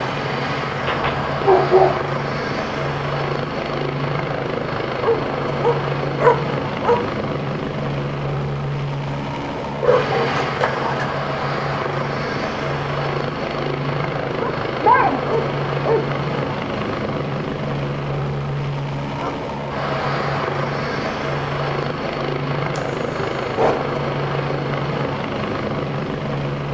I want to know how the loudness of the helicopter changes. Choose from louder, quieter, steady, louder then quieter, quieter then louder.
steady.